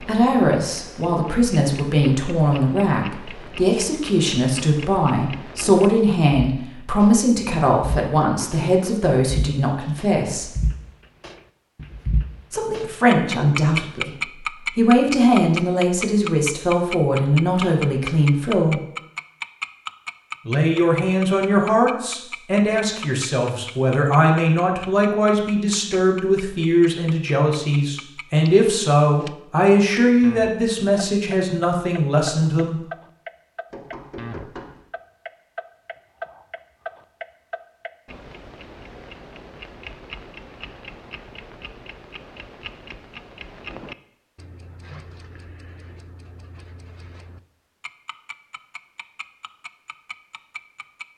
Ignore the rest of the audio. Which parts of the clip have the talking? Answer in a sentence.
The talking can be heard from 0.0 to 10.5 s, from 12.5 to 18.8 s and from 20.4 to 32.8 s.